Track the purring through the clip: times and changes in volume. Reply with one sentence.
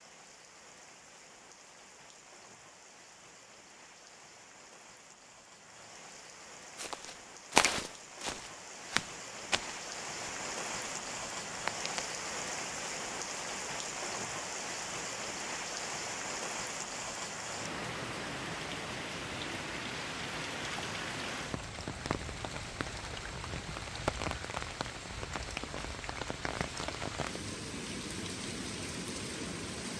You can't hear the purring here.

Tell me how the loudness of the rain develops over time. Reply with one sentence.
The loudness of the rain goes up.